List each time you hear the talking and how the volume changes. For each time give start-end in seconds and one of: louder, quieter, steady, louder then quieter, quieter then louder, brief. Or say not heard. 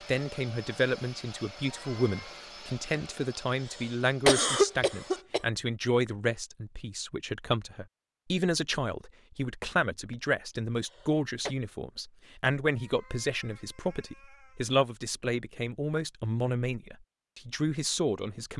0.1-18.5 steady.